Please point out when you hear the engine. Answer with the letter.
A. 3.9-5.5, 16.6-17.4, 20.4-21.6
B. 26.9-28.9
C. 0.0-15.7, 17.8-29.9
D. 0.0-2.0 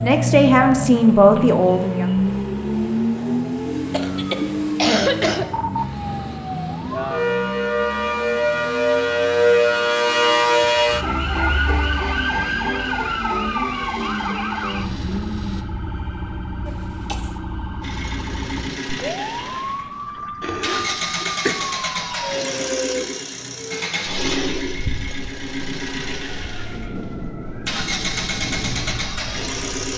C.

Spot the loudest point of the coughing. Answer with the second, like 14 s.
5 s.